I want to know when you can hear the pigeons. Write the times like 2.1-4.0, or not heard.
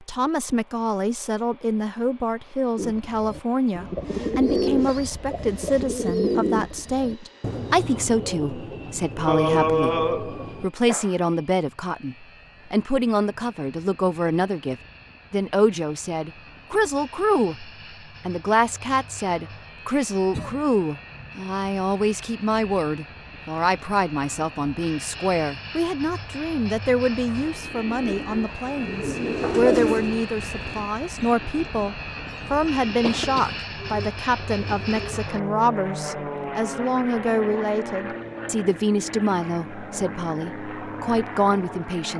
2.8-10.7, 27.4-35.2.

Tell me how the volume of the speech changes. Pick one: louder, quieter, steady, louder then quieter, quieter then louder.
steady.